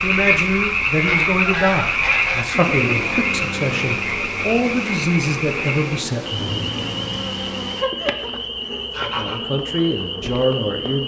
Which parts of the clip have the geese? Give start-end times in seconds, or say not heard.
1.1-3.2, 7.8-9.4.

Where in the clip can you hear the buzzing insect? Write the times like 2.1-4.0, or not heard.
2.9-11.0.